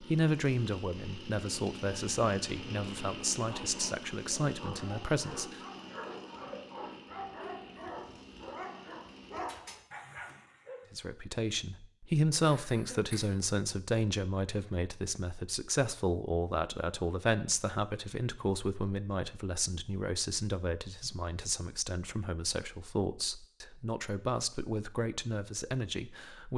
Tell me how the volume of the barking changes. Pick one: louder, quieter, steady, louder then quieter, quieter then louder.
steady.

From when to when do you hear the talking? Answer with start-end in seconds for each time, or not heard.
0.0-5.6, 10.9-26.5.